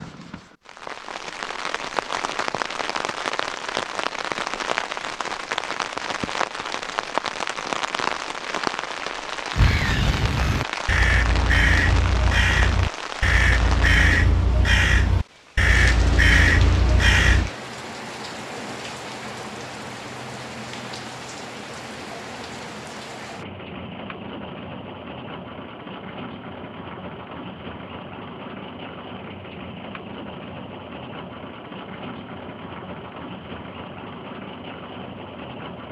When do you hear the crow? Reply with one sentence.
The crow can be heard from 9.5 to 17.5 s.